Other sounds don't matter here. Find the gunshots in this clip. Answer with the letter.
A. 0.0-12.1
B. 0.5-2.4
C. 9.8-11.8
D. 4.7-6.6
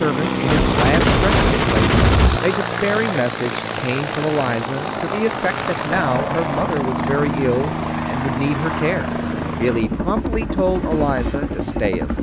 B.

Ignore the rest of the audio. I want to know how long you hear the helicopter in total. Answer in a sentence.
You can hear the helicopter for 12 seconds altogether.